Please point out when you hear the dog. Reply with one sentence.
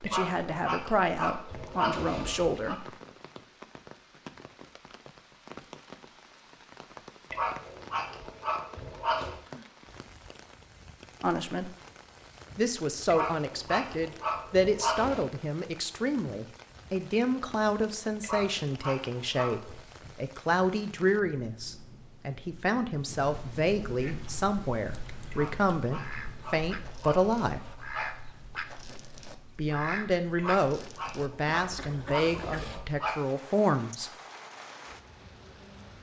The dog can be heard from 0.1 to 2.8 s, from 7.3 to 9.4 s, from 13.1 to 15.2 s, from 18.2 to 19.9 s, from 25.3 to 28.2 s and from 30.4 to 33.1 s.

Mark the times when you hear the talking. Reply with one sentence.
The talking can be heard from 0.0 to 2.9 s, from 11.2 to 11.7 s, from 12.6 to 27.8 s and from 29.6 to 34.1 s.